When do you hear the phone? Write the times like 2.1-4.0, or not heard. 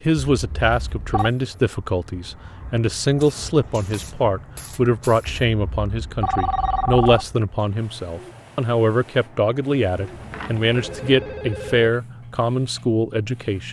0.2-1.3, 5.2-7.3, 9.9-11.9.